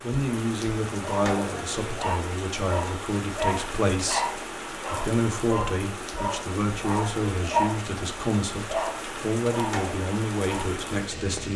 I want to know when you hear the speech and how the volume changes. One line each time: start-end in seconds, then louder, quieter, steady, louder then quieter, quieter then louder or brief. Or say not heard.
0.0-11.5 steady.